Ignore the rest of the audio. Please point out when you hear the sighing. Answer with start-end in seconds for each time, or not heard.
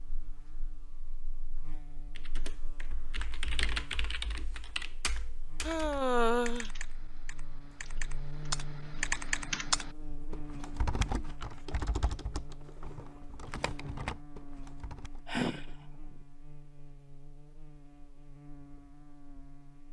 5.6-6.7, 15.2-15.7.